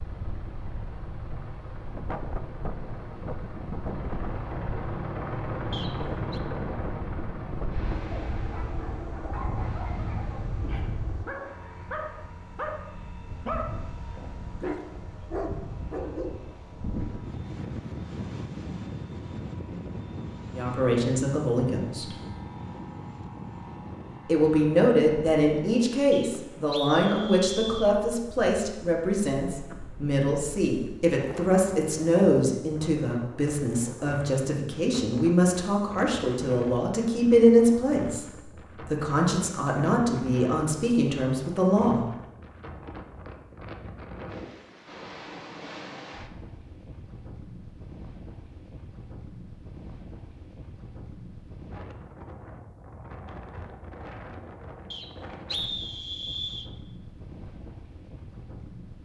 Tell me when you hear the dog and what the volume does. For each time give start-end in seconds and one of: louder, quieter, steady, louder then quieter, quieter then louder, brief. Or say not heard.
8.1-16.4 louder.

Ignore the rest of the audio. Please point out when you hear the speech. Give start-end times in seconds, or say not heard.
20.6-22.1, 24.2-42.0.